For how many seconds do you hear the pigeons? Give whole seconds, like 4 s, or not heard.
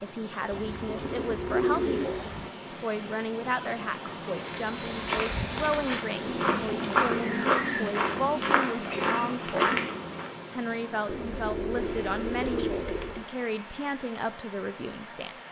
6 s.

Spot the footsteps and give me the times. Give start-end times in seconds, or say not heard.
4.3-10.3.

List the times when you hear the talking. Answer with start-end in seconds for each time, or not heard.
0.0-9.6, 10.5-15.3.